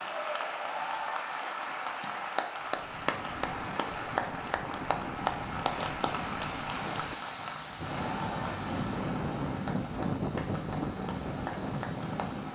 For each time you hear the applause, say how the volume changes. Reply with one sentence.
The applause can be heard from 0.0 to 12.4 s, getting quieter.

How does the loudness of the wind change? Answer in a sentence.
The loudness of the wind goes up.